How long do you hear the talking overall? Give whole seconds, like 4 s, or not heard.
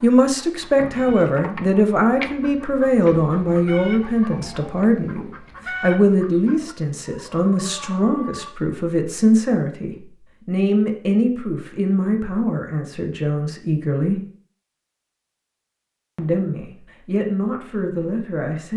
17 s.